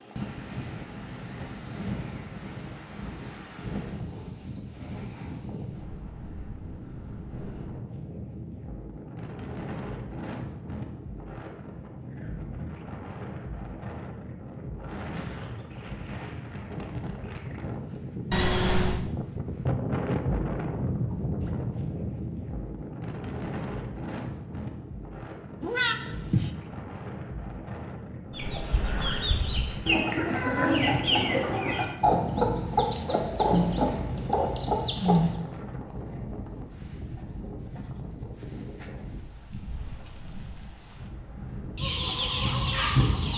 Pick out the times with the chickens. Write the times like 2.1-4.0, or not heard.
28.3-35.4, 41.8-43.3.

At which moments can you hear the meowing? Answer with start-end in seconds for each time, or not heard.
18.3-19.1, 25.6-26.6.